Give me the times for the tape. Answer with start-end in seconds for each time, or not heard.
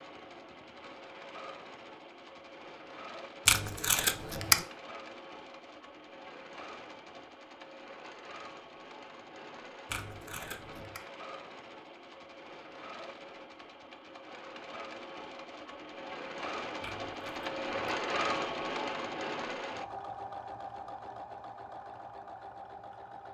3.5-4.7, 9.9-11.0, 16.8-17.9.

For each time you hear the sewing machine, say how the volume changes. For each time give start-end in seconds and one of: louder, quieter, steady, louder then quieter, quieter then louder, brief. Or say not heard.
0.0-23.2 louder.